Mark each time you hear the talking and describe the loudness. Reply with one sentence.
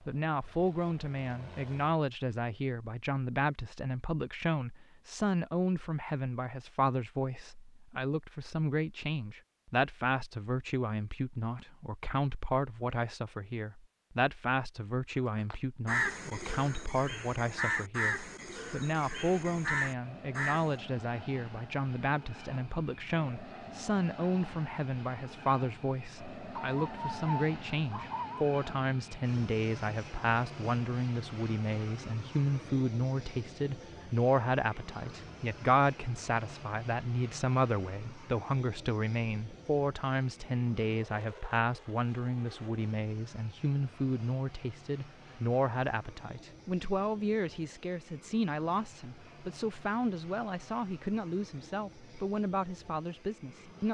You can hear the talking from 0.1 to 53.9 s, at a steady volume.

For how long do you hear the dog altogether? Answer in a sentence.
You can hear the dog for 2 seconds altogether.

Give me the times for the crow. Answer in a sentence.
The crow can be heard from 15.3 to 20.8 s.